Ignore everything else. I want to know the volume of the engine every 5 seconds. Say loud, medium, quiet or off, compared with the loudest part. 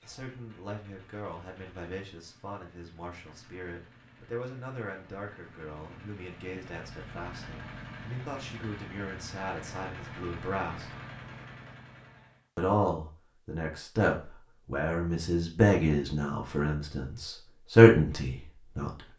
quiet, loud, loud, off.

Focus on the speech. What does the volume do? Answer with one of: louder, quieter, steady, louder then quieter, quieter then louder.
louder.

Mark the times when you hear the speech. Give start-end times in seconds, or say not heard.
0.0-10.9, 12.6-19.1.